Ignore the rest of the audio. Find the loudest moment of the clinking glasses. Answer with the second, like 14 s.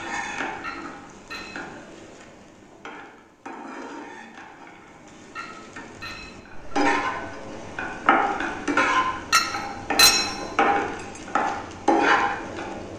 10 s.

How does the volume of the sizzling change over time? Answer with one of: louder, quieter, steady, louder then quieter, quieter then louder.
louder.